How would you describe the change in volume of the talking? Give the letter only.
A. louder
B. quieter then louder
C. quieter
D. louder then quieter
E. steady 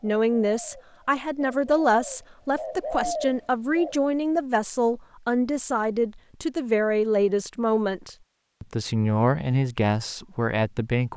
E.